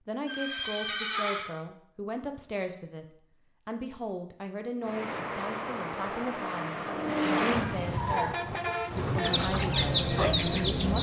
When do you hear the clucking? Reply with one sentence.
The clucking can be heard from 9.2 to 10.9 s.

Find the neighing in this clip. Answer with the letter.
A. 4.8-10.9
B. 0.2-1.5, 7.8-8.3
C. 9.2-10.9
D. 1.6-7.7
B.